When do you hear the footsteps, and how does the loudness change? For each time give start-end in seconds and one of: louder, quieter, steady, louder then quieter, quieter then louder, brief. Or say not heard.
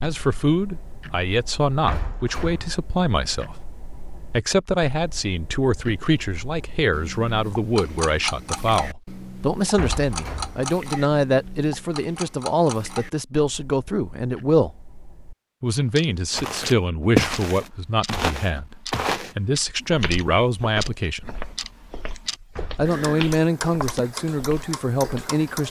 16.3-25.3 quieter.